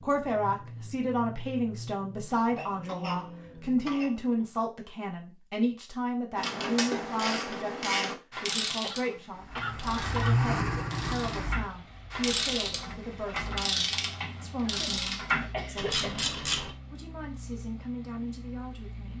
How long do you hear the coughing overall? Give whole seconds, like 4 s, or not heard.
5 s.